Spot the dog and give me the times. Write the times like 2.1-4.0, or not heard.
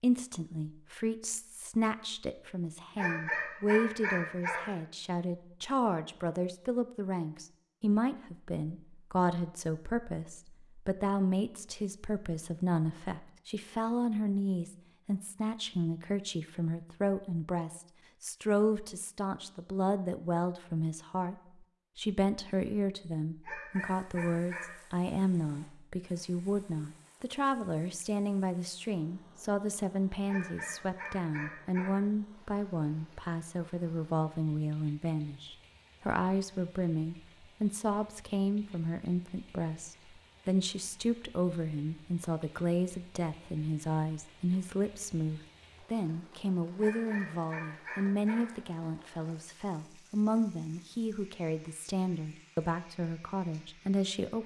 3.0-4.7, 23.4-24.8, 30.2-31.9, 46.8-48.5.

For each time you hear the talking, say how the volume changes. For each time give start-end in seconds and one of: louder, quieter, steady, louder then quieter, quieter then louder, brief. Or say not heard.
0.0-54.4 steady.